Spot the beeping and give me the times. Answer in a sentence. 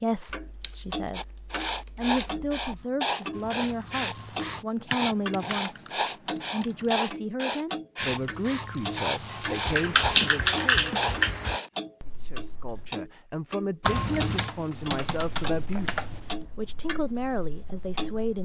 The beeping can be heard from 3.3 to 4.7 s, from 8.0 to 10.2 s and from 13.8 to 14.6 s.